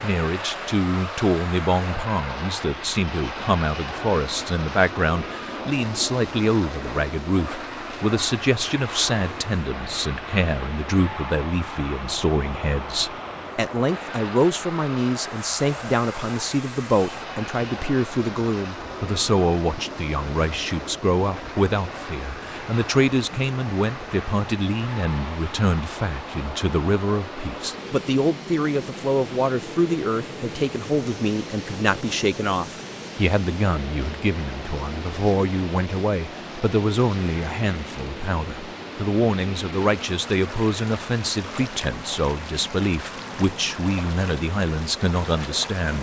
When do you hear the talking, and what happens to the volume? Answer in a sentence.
You can hear the talking from 0.0 to 45.9 s, at a steady volume.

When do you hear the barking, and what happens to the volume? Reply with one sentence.
The barking can't be heard in this clip.